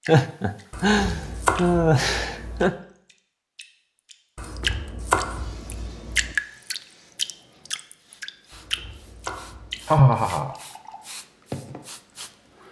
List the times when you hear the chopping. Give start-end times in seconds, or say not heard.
0.7-2.7, 4.3-6.3, 8.5-10.0.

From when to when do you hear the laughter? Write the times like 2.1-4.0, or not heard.
0.1-2.8, 9.8-10.6.